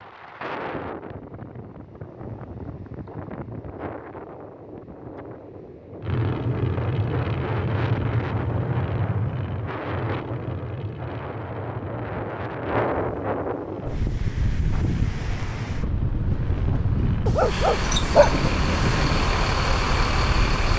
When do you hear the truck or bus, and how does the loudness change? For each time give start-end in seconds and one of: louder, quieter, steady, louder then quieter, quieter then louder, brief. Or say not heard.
6.0-20.7 quieter then louder.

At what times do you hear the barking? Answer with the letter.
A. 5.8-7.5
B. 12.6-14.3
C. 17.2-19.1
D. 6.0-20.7
C.